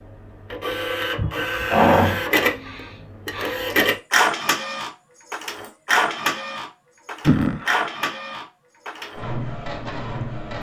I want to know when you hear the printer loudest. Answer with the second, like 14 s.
4 s.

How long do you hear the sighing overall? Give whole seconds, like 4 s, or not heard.
3 s.